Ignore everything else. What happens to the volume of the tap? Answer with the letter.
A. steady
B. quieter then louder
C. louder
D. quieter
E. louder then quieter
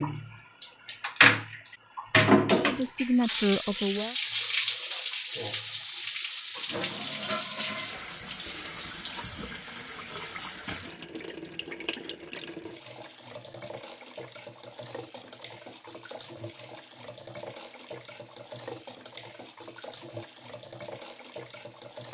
D.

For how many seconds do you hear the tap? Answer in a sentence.
You can hear the tap for 22 seconds altogether.